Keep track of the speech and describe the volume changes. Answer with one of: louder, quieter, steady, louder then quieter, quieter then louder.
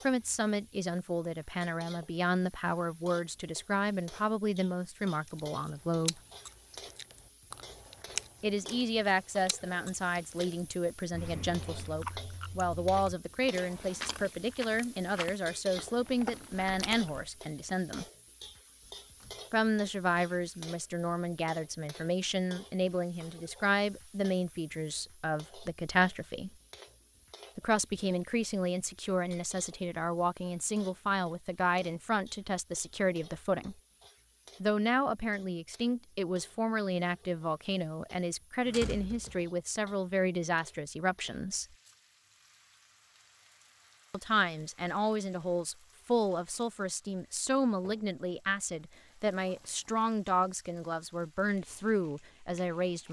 steady.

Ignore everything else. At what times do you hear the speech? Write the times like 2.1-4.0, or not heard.
0.1-6.2, 8.4-18.1, 19.5-26.5, 27.6-33.8, 34.6-41.6, 44.1-53.0.